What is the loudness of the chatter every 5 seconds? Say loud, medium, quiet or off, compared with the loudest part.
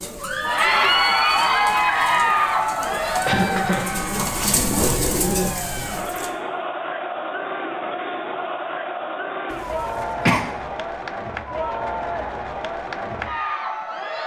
loud, medium, medium.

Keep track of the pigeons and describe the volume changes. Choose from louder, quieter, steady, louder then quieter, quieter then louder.
louder.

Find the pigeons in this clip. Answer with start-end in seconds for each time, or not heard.
0.0-6.3.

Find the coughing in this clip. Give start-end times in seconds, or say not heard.
3.2-4.0, 9.5-10.4.